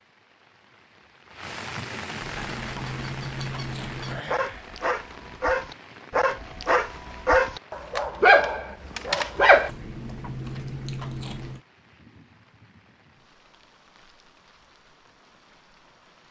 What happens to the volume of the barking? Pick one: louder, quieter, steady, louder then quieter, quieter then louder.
louder.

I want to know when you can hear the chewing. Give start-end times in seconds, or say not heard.
2.2-4.2, 9.7-11.6.